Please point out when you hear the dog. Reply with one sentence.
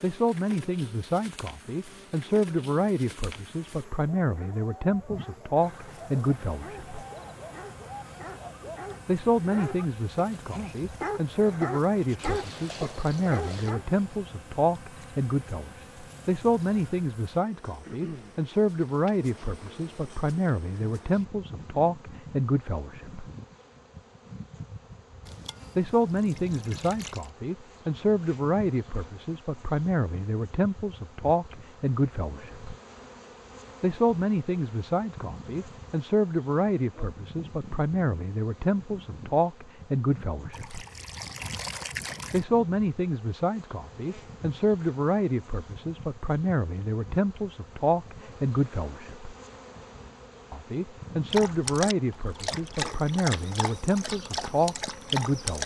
The dog can be heard from 4.2 to 13.8 s and from 51.3 to 55.6 s.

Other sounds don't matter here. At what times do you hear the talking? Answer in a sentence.
The talking can be heard from 0.0 to 7.0 s, from 9.1 to 23.3 s, from 25.8 to 32.8 s, from 33.8 to 40.9 s, from 42.3 to 49.4 s and from 50.5 to 55.6 s.